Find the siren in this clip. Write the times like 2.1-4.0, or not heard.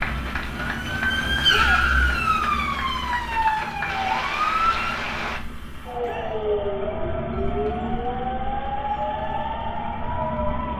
0.0-10.7.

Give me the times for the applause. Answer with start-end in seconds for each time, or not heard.
0.0-5.4.